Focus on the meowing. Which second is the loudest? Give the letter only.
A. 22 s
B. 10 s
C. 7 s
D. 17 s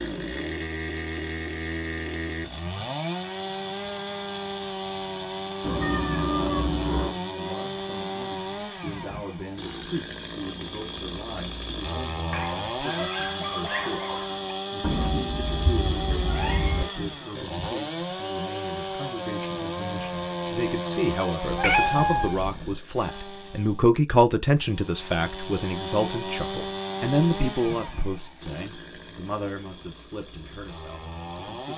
A.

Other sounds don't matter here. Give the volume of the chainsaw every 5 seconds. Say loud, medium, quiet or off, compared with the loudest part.
loud, loud, loud, loud, loud, loud, medium.